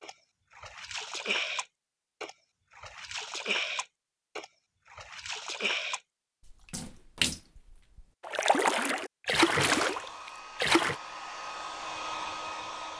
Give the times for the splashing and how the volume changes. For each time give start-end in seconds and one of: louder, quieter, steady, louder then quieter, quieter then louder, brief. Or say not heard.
0.0-10.9 louder.